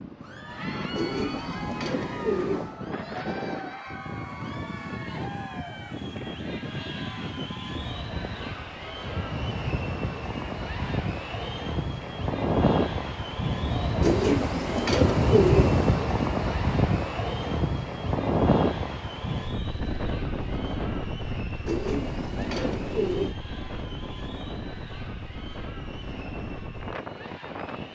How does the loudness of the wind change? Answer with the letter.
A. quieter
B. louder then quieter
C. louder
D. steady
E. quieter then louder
B.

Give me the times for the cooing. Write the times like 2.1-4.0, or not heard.
0.9-2.8, 14.0-16.0, 21.6-23.4.